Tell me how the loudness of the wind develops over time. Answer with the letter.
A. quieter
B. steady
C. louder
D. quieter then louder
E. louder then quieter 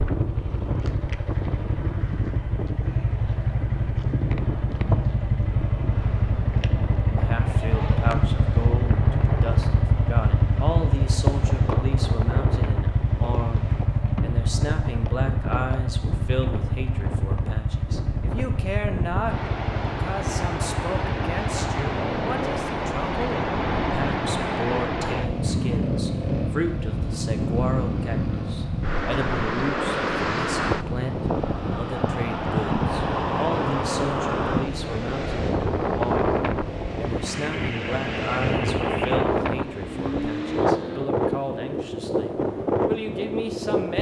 C.